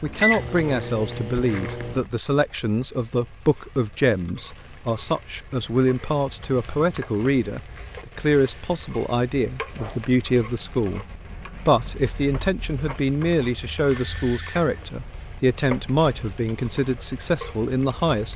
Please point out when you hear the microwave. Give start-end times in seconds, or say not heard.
0.0-2.0.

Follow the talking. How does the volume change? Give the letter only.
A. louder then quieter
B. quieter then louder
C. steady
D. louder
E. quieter
C.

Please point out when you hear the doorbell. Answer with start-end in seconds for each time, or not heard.
0.8-1.3, 8.2-9.1, 13.8-14.8.